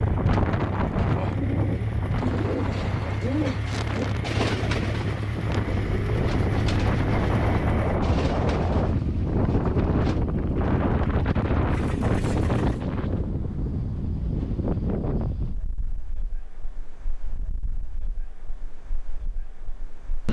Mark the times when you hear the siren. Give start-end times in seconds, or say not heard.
not heard.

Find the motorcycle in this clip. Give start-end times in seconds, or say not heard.
0.0-12.8.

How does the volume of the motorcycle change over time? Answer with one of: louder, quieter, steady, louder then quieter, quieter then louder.
steady.